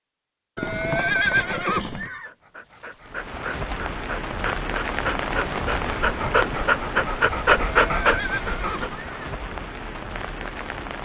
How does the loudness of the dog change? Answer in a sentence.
The volume of the dog goes up.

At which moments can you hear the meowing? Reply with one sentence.
You can't hear the meowing here.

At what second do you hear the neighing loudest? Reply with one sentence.
The loudest moment of the neighing is at 1 second.